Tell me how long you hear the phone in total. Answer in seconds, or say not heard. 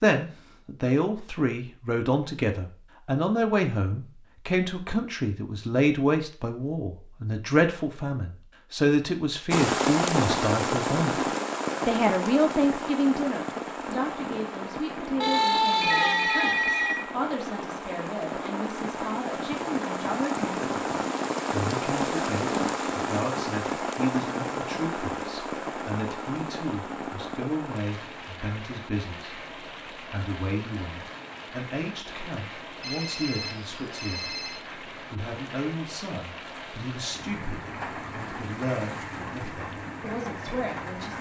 4 s.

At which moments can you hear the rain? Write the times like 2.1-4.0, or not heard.
9.5-41.1.